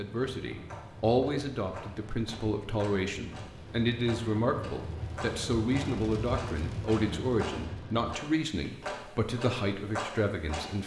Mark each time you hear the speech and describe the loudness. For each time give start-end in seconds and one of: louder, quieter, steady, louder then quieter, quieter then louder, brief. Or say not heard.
0.0-10.8 steady.